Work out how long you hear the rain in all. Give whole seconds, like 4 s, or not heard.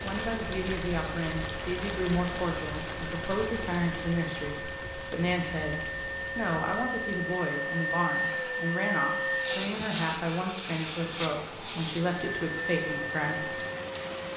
14 s.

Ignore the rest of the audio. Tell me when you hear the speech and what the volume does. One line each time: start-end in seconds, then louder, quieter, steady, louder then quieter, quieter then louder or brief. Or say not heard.
0.0-13.6 steady.